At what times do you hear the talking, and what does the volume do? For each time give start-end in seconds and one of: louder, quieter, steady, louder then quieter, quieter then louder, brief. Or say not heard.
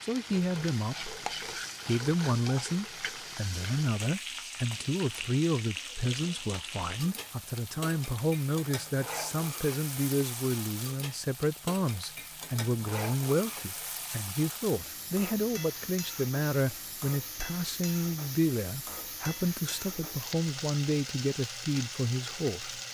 0.0-1.1 brief
1.9-22.8 steady.